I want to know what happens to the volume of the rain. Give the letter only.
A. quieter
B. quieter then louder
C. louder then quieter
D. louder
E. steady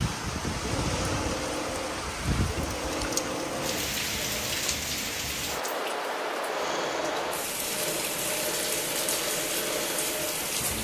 E.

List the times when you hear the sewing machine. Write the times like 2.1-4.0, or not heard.
0.1-4.8, 6.4-10.7.